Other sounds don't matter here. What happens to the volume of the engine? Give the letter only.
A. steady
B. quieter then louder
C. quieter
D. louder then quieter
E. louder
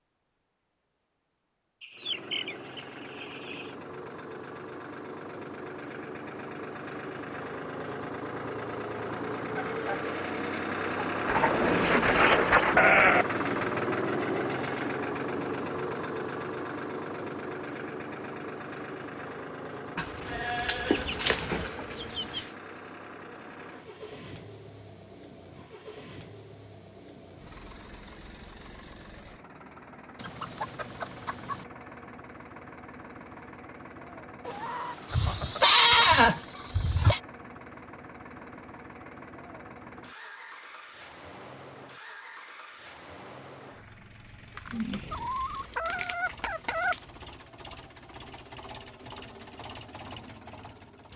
C.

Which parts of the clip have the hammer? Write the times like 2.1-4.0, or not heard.
not heard.